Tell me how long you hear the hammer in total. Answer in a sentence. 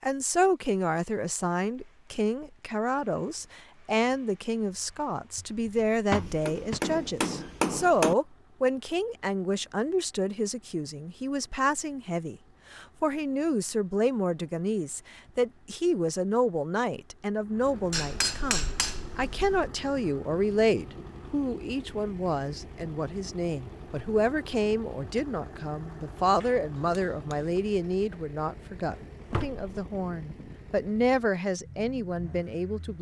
You can hear the hammer for 6 seconds altogether.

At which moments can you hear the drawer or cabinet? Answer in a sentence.
You can hear the drawer or cabinet from 5.3 to 6.8 s and from 28.9 to 29.6 s.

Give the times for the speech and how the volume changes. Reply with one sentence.
You can hear the speech from 0.0 to 32.9 s, at a steady volume.